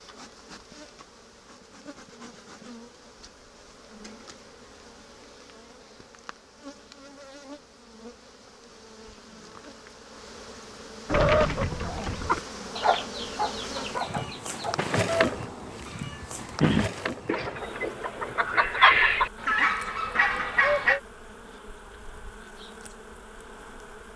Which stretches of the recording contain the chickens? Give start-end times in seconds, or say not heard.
11.1-21.0.